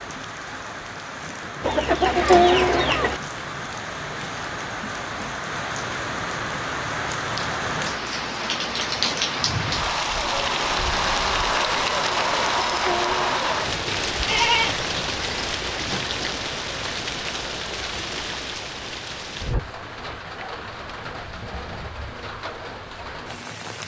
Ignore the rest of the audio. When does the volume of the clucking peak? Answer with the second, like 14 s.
2 s.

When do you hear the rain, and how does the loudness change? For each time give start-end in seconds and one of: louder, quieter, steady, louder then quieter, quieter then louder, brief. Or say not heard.
0.0-23.8 louder then quieter.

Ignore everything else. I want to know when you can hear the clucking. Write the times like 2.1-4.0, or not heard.
1.6-3.2, 12.2-13.5.